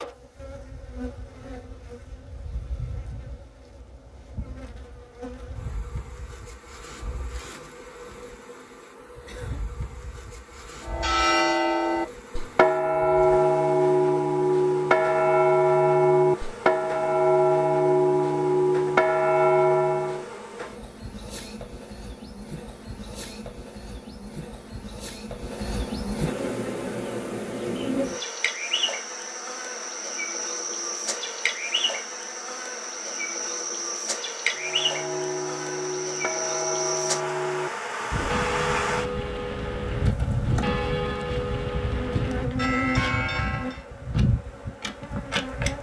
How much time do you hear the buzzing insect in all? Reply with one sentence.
You can hear the buzzing insect for 46 seconds altogether.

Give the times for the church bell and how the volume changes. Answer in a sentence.
The church bell can be heard from 10.8 to 20.2 s, at a steady volume; and from 34.5 to 43.9 s, at a steady volume.